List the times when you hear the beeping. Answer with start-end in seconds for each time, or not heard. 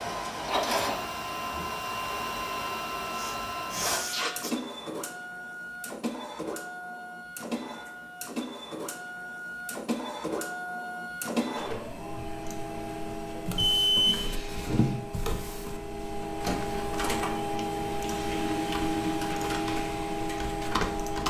13.6-14.2.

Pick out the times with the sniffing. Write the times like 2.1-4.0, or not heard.
3.1-4.5.